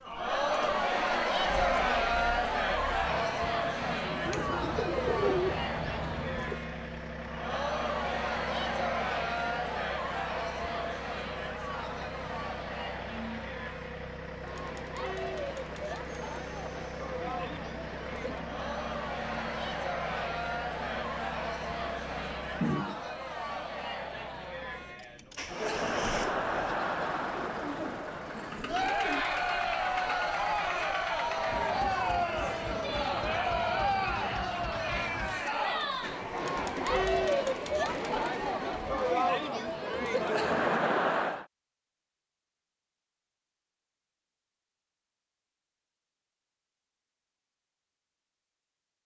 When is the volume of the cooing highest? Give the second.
5 s.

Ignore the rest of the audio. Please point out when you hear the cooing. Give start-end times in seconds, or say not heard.
4.2-6.6, 27.6-29.2.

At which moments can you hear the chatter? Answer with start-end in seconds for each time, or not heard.
0.0-41.5.